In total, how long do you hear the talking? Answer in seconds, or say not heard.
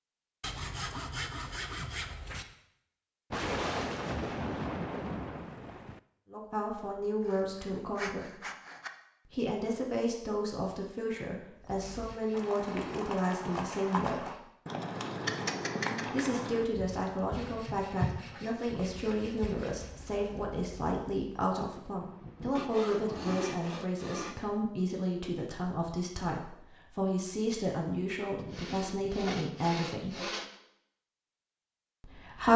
22 s.